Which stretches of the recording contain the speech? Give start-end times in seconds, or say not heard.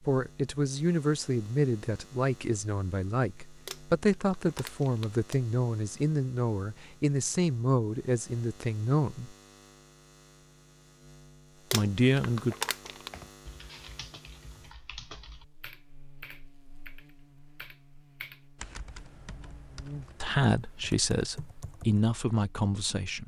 0.1-9.3, 11.7-12.6, 20.2-23.2.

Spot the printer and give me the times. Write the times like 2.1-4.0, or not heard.
not heard.